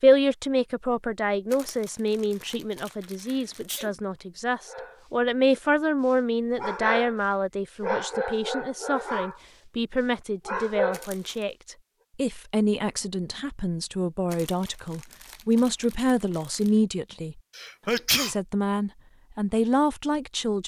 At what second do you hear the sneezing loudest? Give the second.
18 s.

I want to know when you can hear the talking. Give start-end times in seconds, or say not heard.
0.0-17.4, 18.2-20.6.